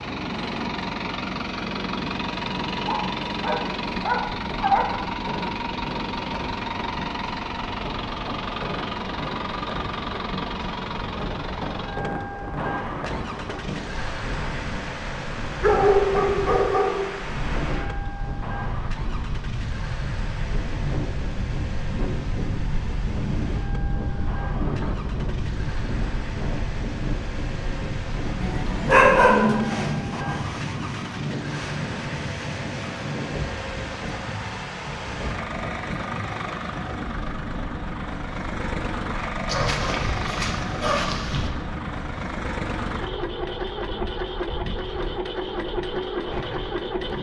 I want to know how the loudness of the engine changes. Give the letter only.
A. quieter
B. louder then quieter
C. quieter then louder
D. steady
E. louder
C.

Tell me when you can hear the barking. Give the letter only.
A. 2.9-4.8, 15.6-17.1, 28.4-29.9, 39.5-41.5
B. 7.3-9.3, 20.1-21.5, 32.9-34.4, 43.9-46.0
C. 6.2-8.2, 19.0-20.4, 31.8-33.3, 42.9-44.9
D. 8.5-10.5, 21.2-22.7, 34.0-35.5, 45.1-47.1
A.